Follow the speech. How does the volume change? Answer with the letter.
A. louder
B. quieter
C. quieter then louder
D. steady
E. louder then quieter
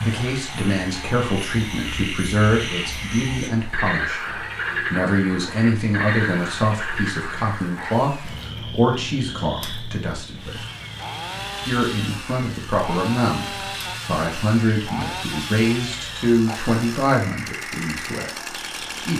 D.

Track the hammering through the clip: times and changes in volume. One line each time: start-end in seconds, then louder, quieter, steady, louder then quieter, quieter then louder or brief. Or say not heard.
not heard.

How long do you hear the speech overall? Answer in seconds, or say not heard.
17 s.